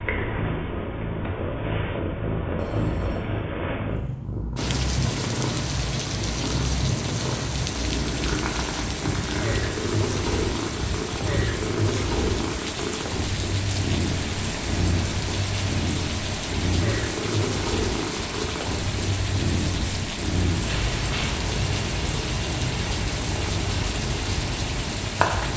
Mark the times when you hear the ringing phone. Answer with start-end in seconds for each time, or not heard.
2.5-3.2, 20.6-21.4.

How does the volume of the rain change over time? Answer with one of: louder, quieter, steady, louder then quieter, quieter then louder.
steady.